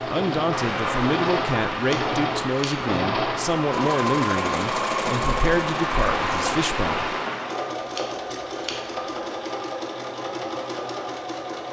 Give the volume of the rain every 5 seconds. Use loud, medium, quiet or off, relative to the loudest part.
loud, loud, off.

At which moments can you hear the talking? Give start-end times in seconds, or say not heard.
0.1-7.2.